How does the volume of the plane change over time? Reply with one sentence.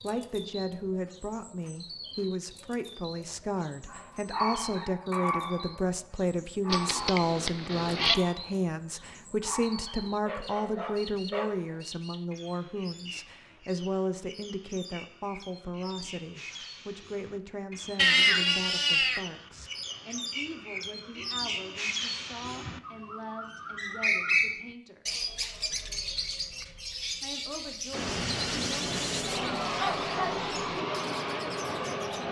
The volume of the plane stays about the same.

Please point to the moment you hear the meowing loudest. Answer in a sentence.
The loudest moment of the meowing is at 18 seconds.